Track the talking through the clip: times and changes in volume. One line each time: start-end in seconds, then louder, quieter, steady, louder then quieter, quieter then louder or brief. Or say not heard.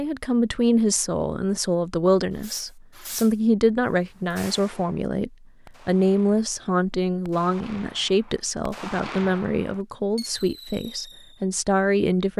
0.0-12.3 steady.